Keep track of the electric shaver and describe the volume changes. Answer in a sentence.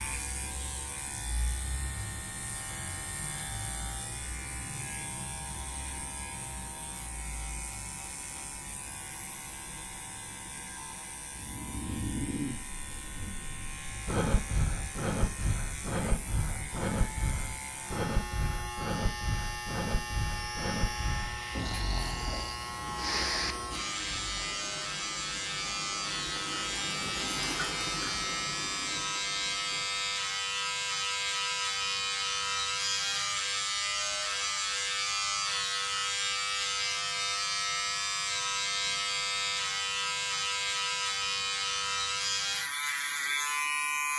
The volume of the electric shaver goes up.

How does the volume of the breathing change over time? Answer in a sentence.
The volume of the breathing stays about the same.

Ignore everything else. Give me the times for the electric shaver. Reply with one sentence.
The electric shaver can be heard from 0.0 to 44.1 s.